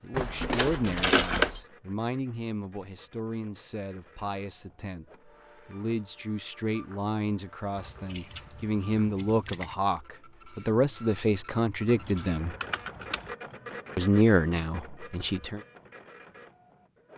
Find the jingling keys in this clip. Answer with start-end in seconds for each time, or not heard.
0.1-1.6, 7.8-9.8, 11.8-13.3.